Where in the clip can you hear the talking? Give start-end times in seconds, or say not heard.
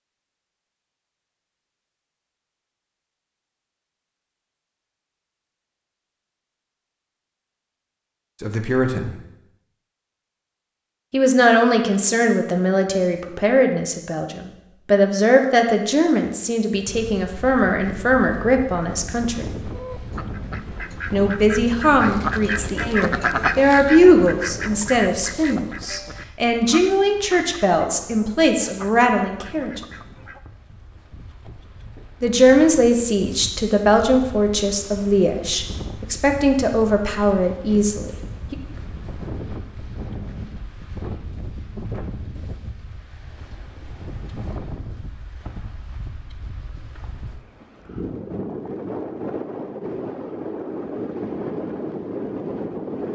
8.4-9.2, 11.1-19.5, 21.1-29.8, 32.2-38.5.